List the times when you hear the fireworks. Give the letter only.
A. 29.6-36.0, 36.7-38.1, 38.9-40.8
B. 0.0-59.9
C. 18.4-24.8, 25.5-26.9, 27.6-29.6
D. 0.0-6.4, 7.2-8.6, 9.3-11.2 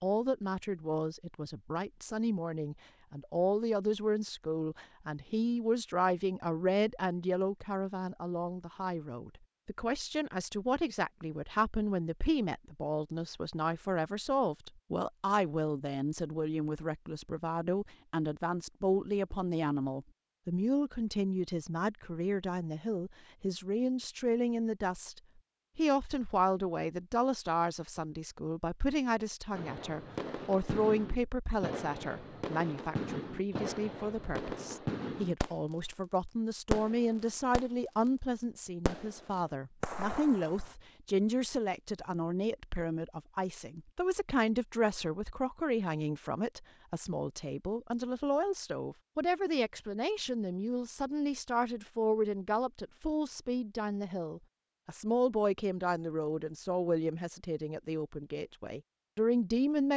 A.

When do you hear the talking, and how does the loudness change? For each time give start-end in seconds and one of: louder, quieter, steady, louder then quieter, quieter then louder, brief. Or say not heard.
0.0-59.9 steady.